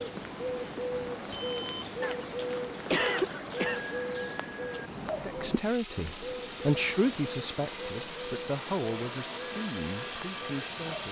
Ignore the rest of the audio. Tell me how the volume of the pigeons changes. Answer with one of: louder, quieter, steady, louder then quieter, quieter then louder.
quieter.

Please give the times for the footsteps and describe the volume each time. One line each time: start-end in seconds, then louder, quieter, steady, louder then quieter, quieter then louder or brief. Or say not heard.
not heard.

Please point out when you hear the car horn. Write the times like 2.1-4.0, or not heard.
not heard.